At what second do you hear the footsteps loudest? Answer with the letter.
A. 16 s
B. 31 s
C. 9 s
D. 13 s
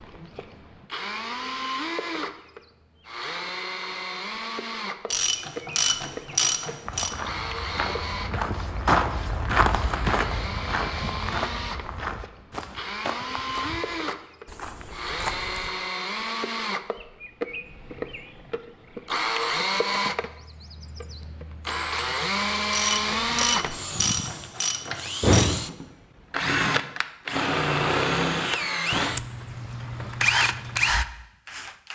C.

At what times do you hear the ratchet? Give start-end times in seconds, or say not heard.
5.1-7.2, 22.7-25.5.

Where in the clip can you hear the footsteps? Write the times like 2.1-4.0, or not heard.
6.8-15.7.